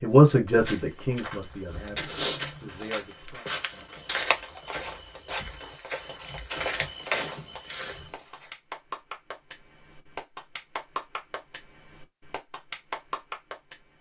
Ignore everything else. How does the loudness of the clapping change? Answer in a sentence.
The volume of the clapping goes up.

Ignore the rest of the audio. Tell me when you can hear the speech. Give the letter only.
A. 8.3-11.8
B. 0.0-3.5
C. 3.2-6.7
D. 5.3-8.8
B.